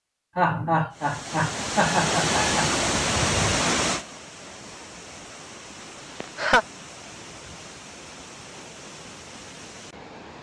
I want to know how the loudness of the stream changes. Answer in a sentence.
The volume of the stream goes down.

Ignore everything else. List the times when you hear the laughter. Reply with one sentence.
The laughter can be heard from 0.3 to 2.6 s and from 6.2 to 6.7 s.